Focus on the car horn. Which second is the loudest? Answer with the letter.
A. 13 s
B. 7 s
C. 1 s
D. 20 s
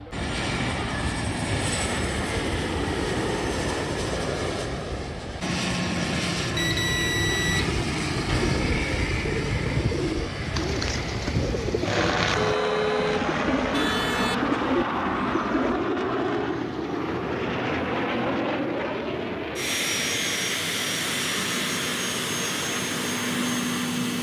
A.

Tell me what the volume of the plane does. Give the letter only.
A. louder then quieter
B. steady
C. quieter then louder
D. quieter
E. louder
B.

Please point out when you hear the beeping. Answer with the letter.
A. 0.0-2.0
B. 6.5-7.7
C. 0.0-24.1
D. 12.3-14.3
B.